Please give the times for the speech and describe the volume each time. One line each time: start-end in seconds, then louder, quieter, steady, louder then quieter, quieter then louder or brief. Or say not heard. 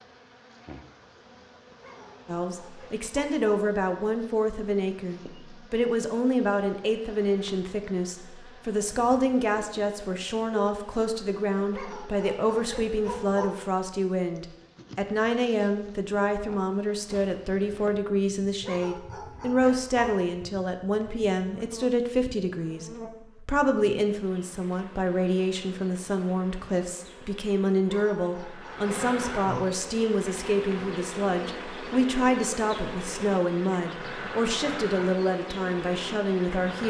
2.2-36.8 steady.